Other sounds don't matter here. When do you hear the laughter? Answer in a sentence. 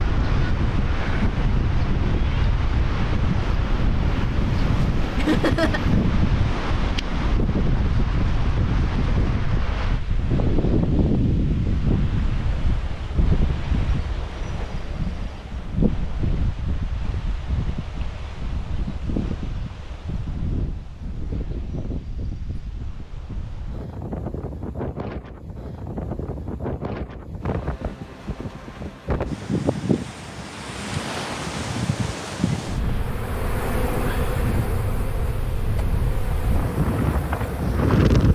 You can hear the laughter from 5.2 to 6.0 s.